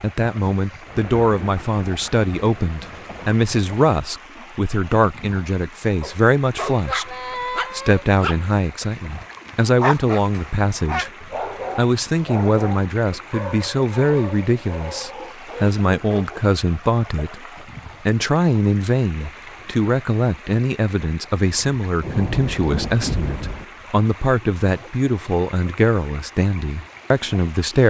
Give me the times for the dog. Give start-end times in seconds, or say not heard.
6.0-16.4.